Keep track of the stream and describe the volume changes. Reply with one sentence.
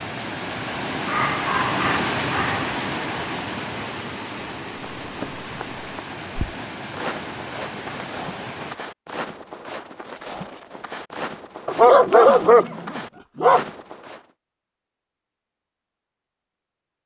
The volume of the stream goes down.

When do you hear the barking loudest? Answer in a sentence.
The loudest moment of the barking is at 12 seconds.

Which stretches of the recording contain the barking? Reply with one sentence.
The barking can be heard from 1.1 to 2.7 s and from 11.7 to 13.7 s.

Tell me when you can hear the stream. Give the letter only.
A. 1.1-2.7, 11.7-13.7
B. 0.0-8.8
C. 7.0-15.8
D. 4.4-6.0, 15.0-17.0
B.